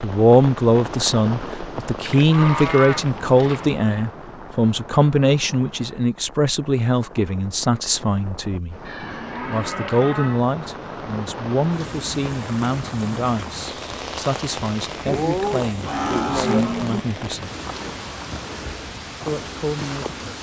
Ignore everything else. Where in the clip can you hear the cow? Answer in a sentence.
You can hear the cow from 2.0 to 3.7 s, from 8.8 to 10.4 s and from 15.1 to 17.0 s.